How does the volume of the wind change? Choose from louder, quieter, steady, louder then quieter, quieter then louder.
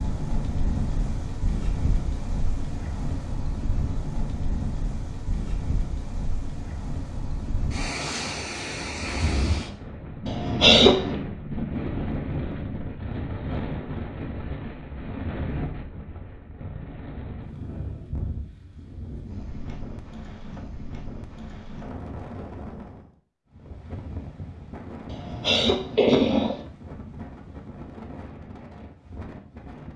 quieter.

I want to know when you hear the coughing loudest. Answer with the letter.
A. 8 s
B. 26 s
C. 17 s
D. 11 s
D.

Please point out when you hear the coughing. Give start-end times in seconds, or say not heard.
10.2-11.2, 25.1-26.6.